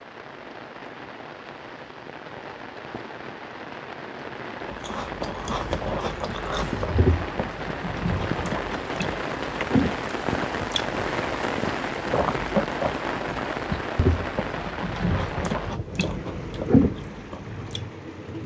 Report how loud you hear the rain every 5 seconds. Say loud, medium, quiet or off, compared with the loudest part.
medium, loud, loud, medium.